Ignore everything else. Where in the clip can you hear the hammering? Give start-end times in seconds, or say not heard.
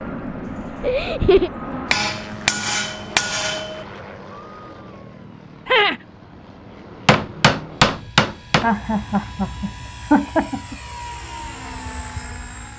1.9-3.9, 7.0-8.7.